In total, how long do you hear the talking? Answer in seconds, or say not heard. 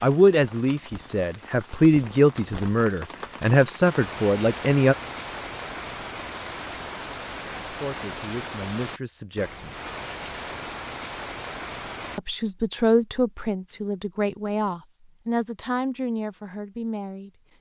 12 s.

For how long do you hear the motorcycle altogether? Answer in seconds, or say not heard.
not heard.